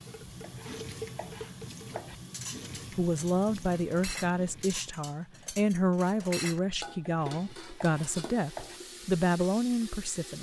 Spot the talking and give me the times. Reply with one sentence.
You can hear the talking from 3.0 to 10.3 s.